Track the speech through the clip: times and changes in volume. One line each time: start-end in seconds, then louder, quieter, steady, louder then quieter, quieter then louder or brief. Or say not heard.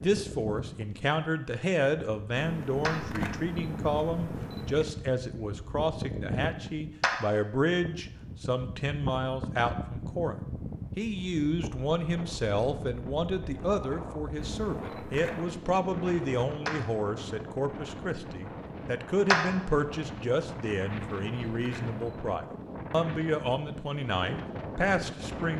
0.0-25.5 steady.